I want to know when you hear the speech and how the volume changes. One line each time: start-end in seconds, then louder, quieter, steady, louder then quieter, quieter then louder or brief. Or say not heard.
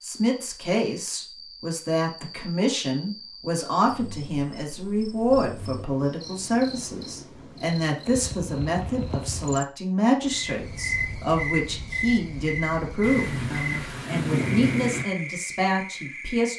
0.0-16.5 steady.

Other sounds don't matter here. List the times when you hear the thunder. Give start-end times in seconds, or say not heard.
13.0-15.1.